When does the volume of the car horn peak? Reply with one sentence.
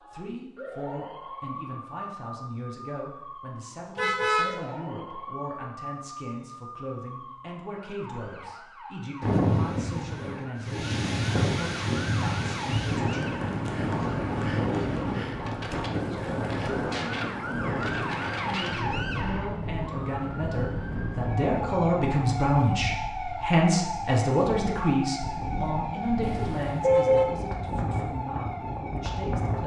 The volume of the car horn peaks at 27 seconds.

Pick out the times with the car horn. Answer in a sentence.
The car horn can be heard from 4.0 to 4.5 s and from 26.2 to 27.2 s.